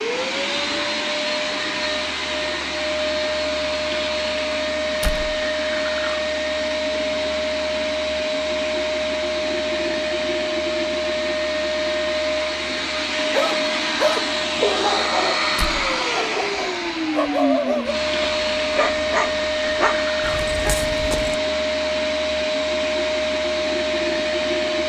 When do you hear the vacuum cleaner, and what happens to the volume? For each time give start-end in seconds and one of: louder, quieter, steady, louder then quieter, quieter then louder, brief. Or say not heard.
0.0-24.8 steady.